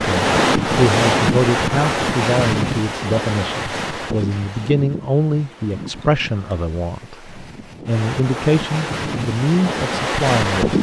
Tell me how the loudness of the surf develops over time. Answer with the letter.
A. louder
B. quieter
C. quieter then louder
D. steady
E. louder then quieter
C.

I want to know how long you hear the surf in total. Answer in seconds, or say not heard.
11 s.